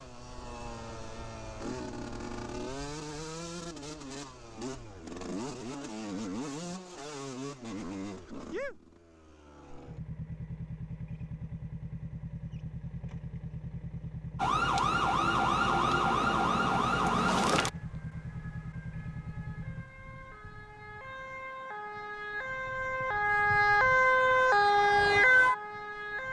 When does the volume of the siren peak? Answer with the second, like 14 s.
25 s.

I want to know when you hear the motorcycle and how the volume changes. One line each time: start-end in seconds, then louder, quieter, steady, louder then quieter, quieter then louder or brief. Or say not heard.
0.0-19.9 steady.